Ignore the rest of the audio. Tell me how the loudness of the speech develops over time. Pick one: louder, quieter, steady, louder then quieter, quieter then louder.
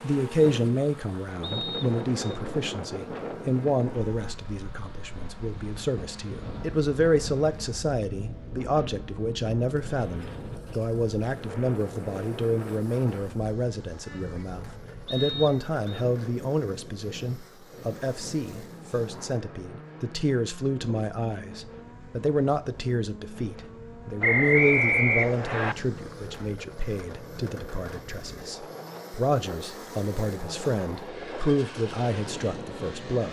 steady.